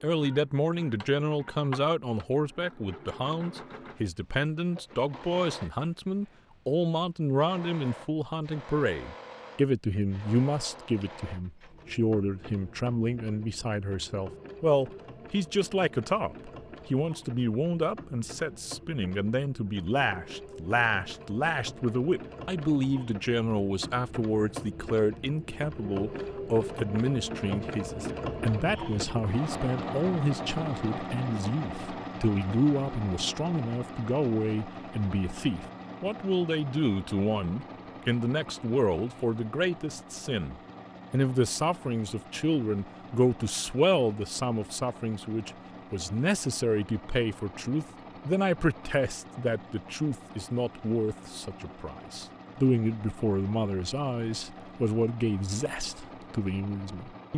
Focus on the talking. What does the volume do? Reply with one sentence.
The volume of the talking stays about the same.